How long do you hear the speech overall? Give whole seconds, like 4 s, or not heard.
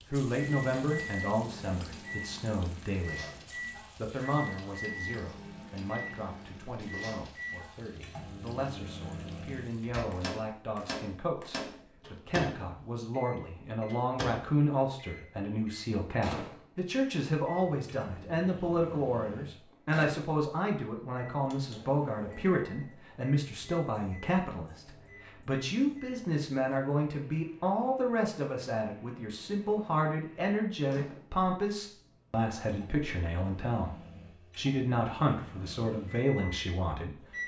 37 s.